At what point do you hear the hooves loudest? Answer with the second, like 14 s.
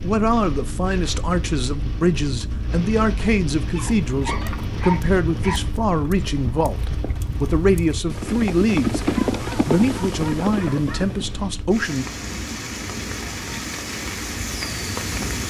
9 s.